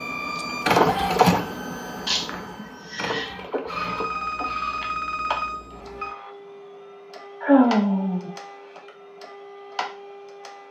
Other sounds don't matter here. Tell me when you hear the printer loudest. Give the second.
1 s.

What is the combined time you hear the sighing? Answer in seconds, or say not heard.
2 s.